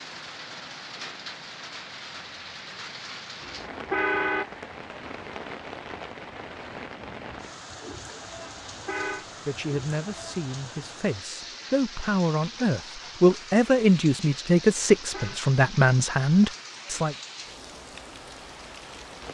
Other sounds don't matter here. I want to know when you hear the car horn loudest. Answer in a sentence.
The loudest moment of the car horn is at 4 seconds.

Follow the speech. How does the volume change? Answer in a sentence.
The volume of the speech goes up.